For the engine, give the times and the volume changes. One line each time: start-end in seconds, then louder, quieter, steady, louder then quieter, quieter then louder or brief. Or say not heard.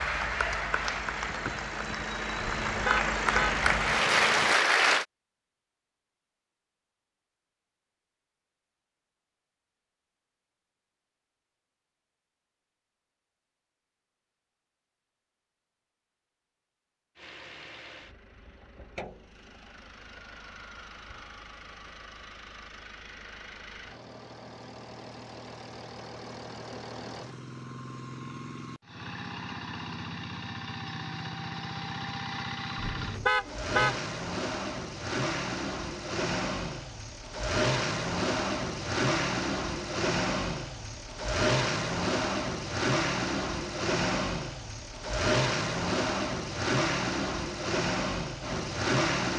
0.0-4.6 louder
17.1-49.3 louder.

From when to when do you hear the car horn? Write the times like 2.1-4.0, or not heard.
2.4-3.6, 32.8-34.0.